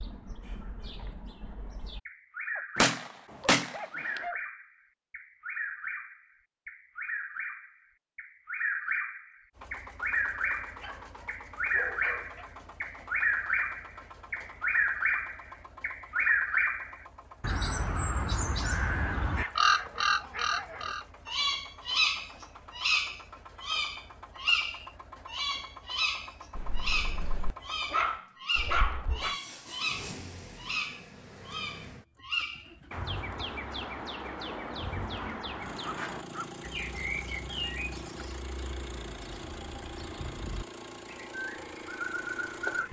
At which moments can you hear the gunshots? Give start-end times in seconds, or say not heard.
2.8-4.2.